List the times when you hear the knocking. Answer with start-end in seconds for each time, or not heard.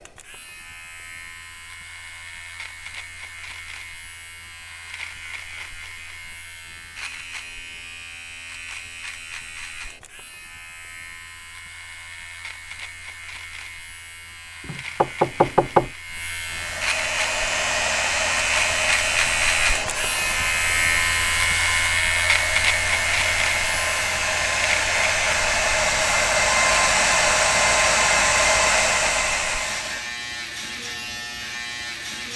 14.7-15.9.